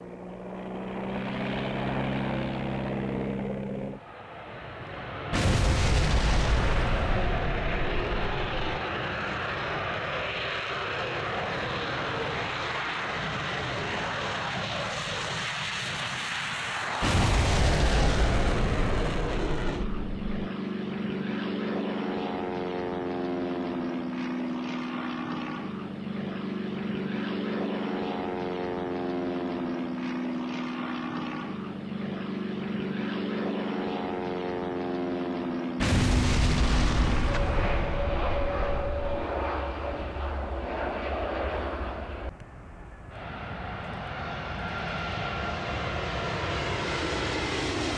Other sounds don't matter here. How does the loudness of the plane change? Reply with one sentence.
The volume of the plane stays about the same.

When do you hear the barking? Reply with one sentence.
You can't hear the barking here.